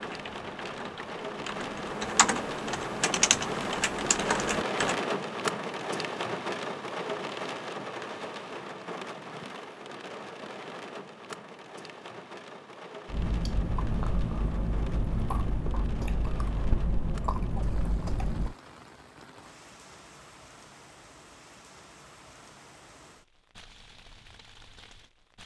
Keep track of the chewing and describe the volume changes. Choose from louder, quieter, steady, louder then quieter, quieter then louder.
steady.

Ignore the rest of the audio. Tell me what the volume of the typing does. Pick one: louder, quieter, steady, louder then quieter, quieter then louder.
louder.